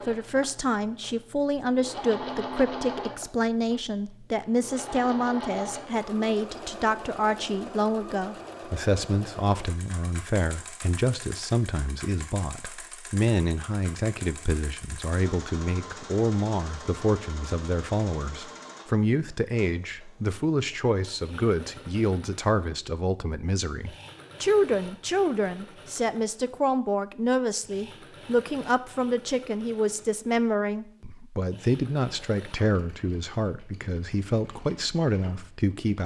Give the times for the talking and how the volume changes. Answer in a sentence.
The talking can be heard from 0.1 to 36.0 s, at a steady volume.